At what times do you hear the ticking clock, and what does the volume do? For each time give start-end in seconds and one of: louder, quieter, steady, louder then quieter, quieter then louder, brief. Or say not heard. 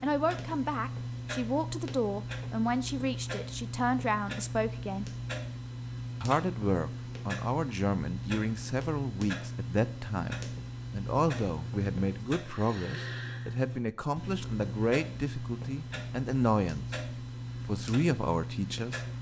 0.0-19.1 steady.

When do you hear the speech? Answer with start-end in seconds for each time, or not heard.
0.0-5.0, 6.2-16.9, 17.6-19.0.